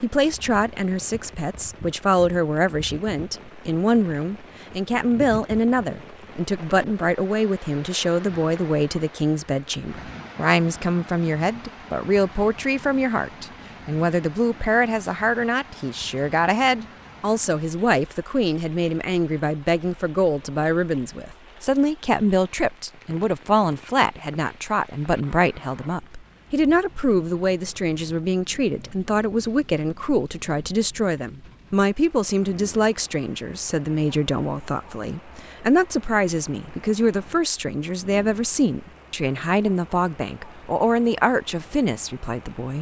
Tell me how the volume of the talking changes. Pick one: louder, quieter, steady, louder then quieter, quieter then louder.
steady.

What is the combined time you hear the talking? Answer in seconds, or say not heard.
43 s.